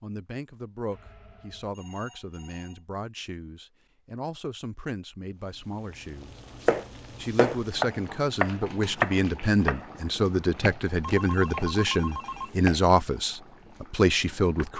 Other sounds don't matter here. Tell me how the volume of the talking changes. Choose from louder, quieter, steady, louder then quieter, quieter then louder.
louder.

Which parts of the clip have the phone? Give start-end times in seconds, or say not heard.
0.9-2.8, 11.0-12.6.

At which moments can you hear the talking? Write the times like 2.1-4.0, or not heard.
0.0-6.3, 7.2-14.7.